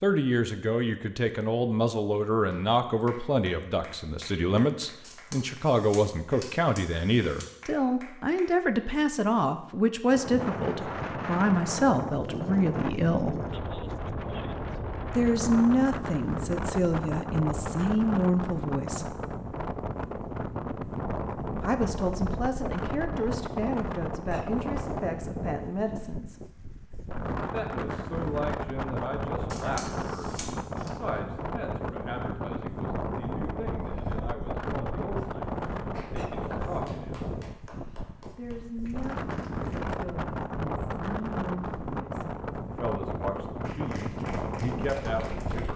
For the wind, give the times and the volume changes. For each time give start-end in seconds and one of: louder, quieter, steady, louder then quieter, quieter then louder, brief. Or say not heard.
10.1-45.7 steady.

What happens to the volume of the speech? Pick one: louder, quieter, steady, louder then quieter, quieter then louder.
quieter.